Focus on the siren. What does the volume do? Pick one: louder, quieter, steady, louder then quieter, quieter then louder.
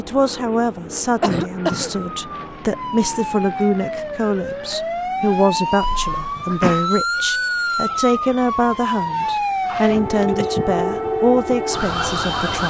louder.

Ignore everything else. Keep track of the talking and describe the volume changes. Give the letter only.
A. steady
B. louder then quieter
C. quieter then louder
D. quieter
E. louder
A.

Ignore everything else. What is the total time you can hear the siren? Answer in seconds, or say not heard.
11 s.